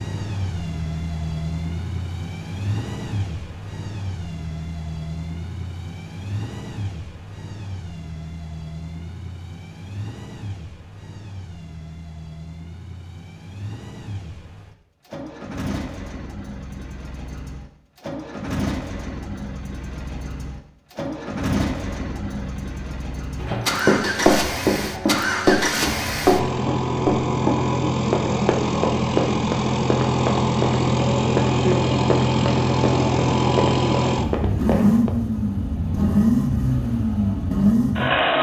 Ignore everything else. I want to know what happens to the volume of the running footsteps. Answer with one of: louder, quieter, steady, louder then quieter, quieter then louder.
quieter.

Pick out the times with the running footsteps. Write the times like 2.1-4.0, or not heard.
23.4-35.1.